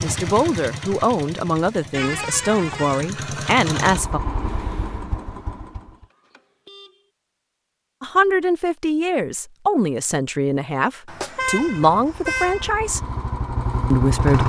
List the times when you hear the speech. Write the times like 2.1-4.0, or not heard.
0.0-4.2, 8.0-13.0, 13.9-14.4.